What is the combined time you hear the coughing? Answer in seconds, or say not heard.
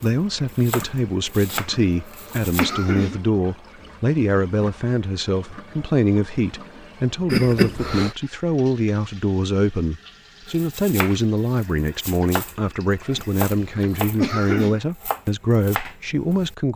4 s.